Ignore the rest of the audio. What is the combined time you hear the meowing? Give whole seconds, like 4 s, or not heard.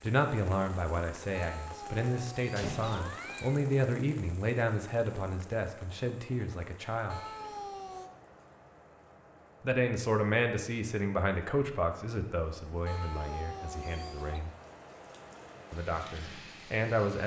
5 s.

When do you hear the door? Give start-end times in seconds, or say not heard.
2.5-3.1.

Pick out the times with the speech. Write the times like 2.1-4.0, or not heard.
0.0-7.2, 9.6-14.5, 15.7-17.2.